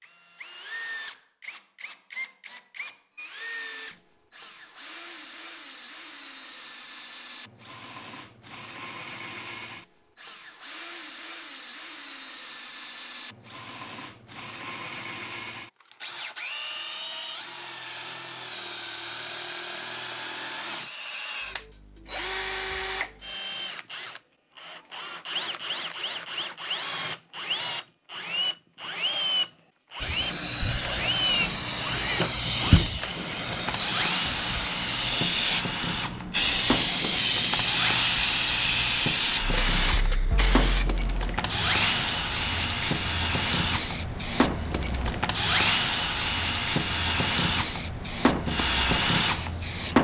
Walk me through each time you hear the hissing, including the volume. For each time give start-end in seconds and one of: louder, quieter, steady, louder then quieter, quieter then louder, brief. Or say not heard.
30.0-49.9 quieter.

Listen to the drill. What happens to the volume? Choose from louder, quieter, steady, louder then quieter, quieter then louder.
louder.